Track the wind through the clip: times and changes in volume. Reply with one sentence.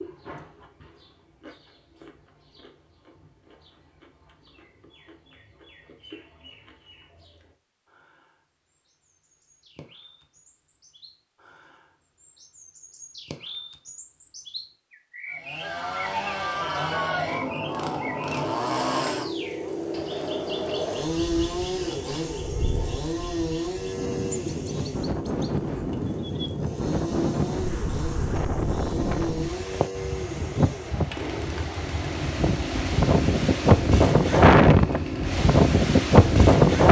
You can hear the wind from 16.4 to 36.8 s, getting louder.